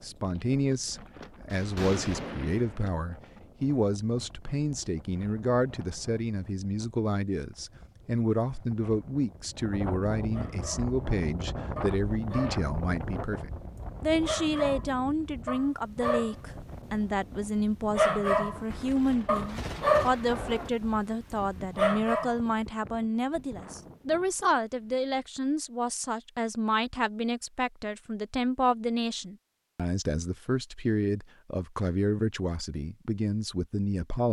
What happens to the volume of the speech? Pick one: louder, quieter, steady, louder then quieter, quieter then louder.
steady.